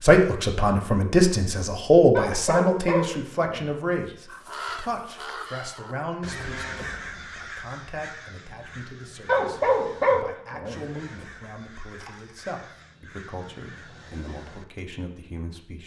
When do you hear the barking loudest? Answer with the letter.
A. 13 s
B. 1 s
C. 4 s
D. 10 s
D.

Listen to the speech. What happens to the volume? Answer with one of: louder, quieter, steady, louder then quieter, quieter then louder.
quieter.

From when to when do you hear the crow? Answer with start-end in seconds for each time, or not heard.
4.2-14.8.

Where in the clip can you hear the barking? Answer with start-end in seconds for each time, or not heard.
2.1-4.2, 9.2-10.8.